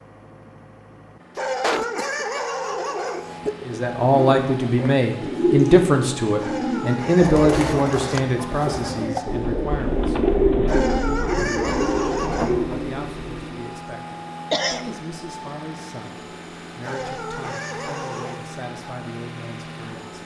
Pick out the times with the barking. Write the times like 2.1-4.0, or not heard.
1.4-3.2, 6.4-8.0, 10.7-12.6, 16.8-18.4.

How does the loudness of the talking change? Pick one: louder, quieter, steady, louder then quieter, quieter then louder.
quieter.